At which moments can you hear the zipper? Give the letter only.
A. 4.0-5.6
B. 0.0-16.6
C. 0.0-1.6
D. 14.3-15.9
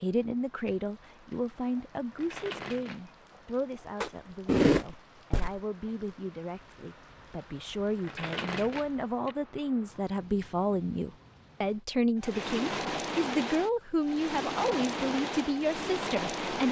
A.